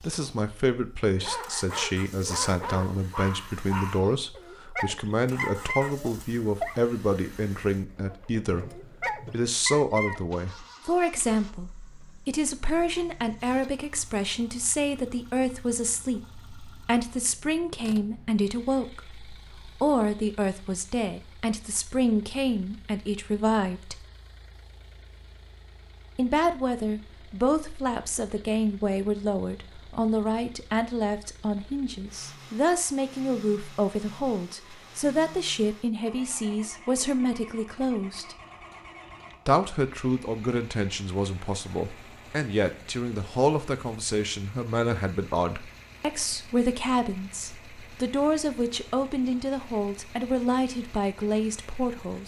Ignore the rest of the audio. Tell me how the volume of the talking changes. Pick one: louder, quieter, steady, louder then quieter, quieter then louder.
steady.